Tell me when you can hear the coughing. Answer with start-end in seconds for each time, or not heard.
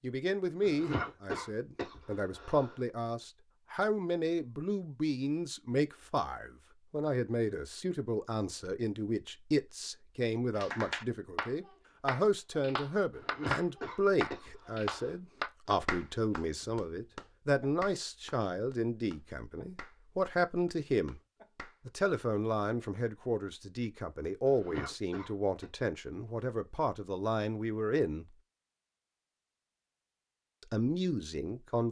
0.6-2.8, 13.1-15.2, 24.4-25.6.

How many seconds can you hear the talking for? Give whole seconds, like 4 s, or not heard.
29 s.